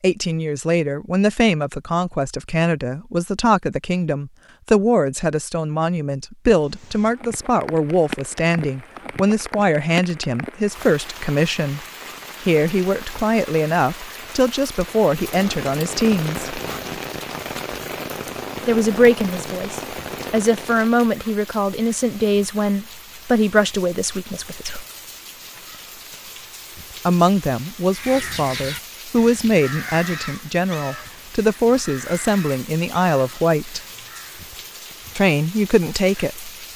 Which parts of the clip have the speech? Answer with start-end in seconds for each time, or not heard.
0.0-11.8, 12.4-16.6, 18.6-24.9, 27.1-33.8, 35.1-36.5.